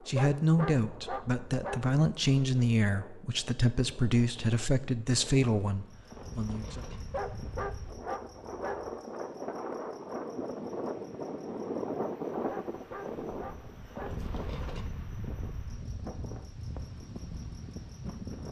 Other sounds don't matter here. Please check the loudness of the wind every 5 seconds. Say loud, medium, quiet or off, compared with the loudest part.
quiet, medium, loud, medium.